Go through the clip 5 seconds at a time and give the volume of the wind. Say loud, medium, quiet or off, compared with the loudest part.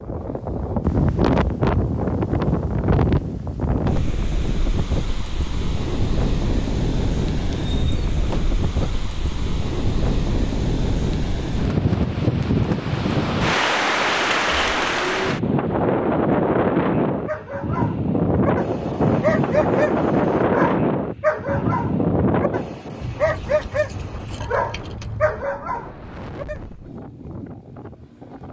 loud, medium, loud, loud, loud, quiet.